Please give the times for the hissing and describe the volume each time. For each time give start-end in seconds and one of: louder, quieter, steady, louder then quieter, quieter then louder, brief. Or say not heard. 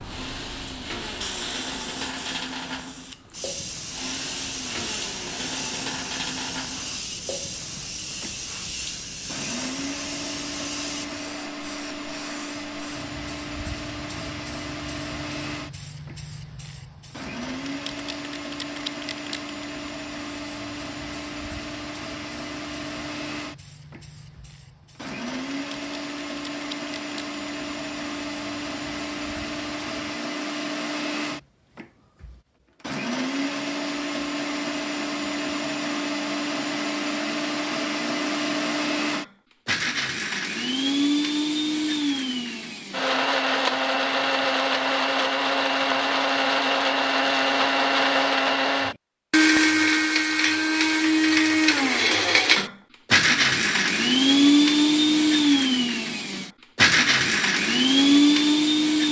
0.0-30.2 quieter.